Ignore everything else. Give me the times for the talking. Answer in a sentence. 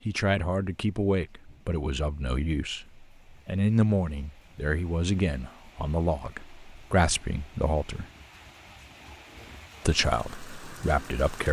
You can hear the talking from 0.1 to 8.1 s and from 9.8 to 11.4 s.